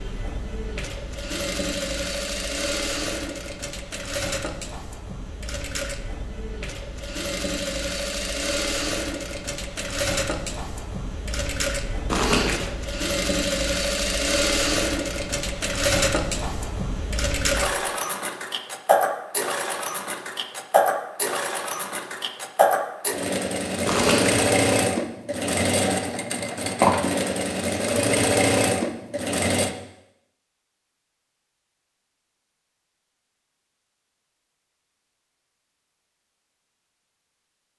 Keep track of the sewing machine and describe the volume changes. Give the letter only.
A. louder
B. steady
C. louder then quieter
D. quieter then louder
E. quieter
A.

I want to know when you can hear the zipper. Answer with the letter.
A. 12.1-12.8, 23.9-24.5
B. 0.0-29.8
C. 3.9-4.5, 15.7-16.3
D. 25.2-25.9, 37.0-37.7
A.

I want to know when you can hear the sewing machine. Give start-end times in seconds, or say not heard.
0.0-29.8.